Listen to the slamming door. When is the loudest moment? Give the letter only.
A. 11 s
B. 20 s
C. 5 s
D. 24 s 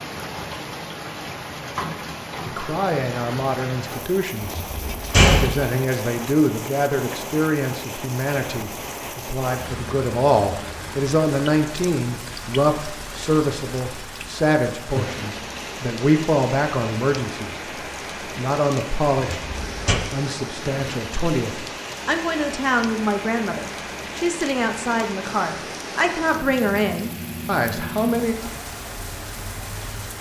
C.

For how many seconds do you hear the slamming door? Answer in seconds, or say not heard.
2 s.